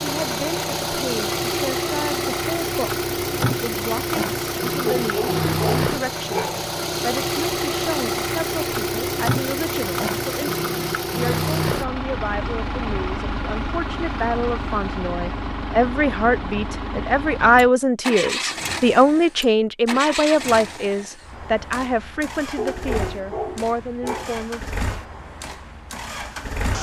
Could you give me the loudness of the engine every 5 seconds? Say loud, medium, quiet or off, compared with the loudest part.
loud, loud, loud, medium, medium, medium.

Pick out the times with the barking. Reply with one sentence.
You can hear the barking from 4.8 to 6.7 s and from 22.6 to 24.4 s.